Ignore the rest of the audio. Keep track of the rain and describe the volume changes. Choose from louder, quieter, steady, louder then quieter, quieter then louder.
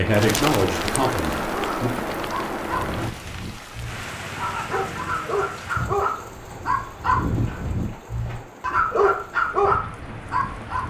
quieter.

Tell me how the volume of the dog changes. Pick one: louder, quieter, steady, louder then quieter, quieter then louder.
louder.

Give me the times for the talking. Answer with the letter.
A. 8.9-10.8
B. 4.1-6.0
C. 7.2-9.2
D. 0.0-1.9
D.